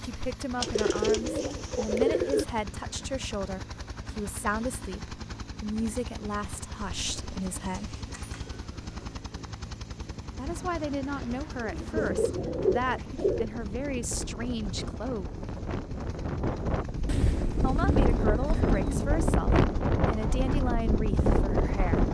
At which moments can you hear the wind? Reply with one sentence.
You can hear the wind from 10.2 to 22.1 s.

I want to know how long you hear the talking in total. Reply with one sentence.
The talking can be heard for 17 seconds in total.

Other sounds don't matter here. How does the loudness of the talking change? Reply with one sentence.
The loudness of the talking stays about the same.